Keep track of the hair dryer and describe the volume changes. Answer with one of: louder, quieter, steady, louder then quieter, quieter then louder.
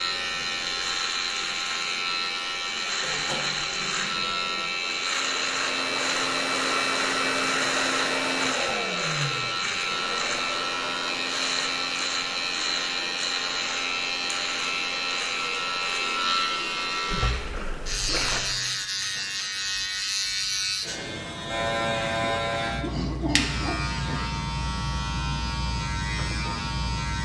quieter.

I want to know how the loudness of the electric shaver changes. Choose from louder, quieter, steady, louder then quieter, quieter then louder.
steady.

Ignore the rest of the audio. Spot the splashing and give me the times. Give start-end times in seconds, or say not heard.
17.1-18.6.